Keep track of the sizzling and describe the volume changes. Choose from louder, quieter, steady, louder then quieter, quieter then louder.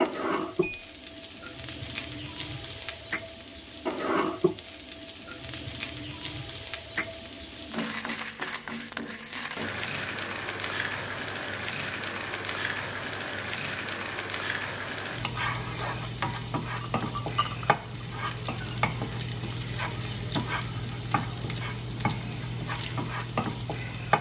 steady.